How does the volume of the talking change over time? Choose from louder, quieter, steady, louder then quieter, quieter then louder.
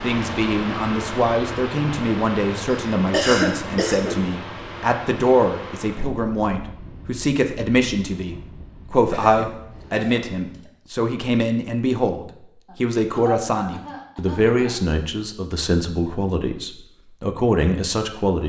steady.